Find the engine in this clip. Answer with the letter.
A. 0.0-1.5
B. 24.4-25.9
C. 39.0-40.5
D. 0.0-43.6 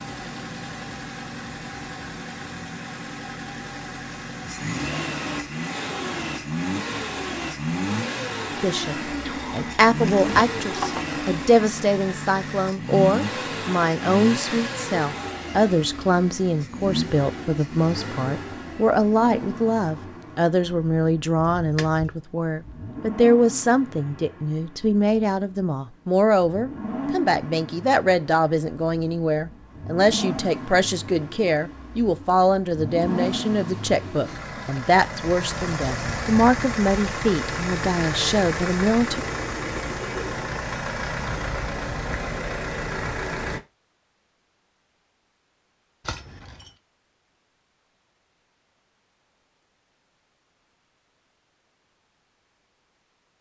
D.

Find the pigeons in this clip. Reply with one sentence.
You can hear the pigeons from 39.0 to 40.5 s.